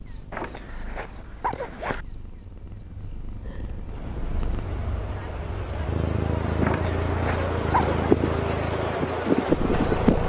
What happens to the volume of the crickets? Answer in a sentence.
The volume of the crickets goes down, then up.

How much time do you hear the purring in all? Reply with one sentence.
You can hear the purring for 10 seconds altogether.